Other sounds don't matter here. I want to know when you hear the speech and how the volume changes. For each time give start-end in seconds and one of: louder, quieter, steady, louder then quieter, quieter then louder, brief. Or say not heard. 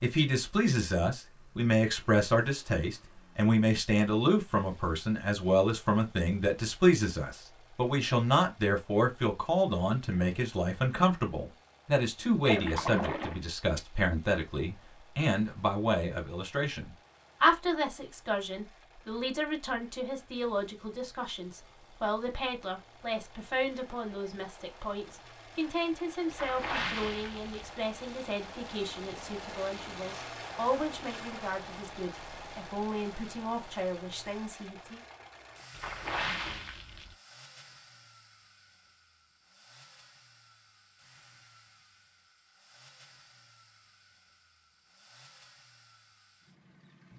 0.0-35.0 quieter.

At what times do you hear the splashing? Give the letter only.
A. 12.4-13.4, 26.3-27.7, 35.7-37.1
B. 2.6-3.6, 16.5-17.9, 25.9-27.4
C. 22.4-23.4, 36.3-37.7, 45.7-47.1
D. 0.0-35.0
A.